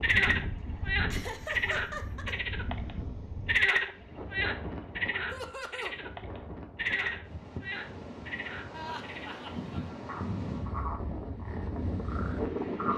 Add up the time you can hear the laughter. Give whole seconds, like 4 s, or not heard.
3 s.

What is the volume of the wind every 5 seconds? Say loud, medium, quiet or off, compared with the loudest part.
medium, medium, loud.